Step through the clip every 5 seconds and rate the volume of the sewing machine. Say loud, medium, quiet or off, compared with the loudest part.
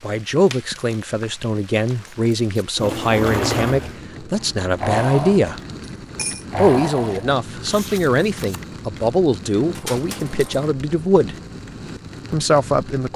loud, loud, off.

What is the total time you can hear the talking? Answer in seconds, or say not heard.
11 s.